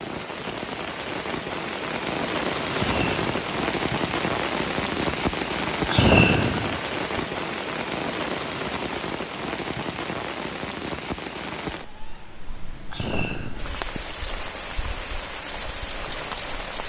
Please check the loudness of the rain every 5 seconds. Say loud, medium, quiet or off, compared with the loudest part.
loud, loud, medium, medium.